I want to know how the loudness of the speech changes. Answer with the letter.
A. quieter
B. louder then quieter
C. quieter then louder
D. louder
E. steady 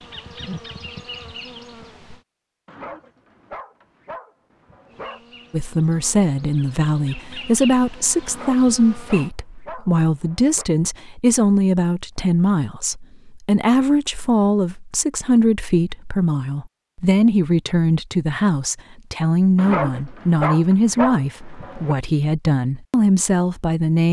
E.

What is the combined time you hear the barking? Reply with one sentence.
The barking can be heard for 8 seconds in total.